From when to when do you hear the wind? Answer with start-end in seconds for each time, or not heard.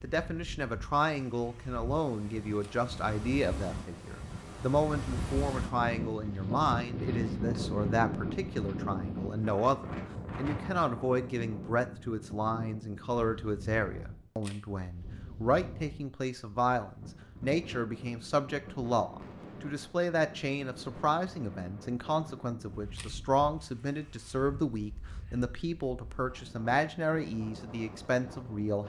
0.0-28.8.